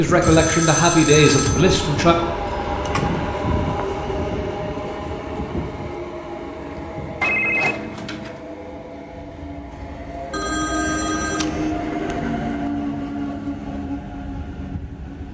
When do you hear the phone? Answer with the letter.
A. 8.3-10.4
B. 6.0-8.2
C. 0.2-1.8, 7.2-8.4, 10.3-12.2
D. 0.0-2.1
C.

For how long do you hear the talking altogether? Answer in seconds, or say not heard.
2 s.